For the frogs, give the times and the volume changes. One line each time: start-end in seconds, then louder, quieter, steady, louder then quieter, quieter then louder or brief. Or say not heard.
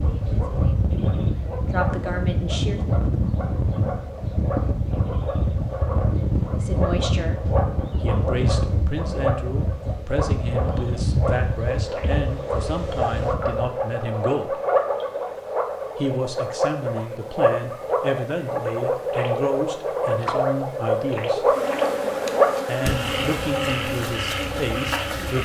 0.0-25.4 louder.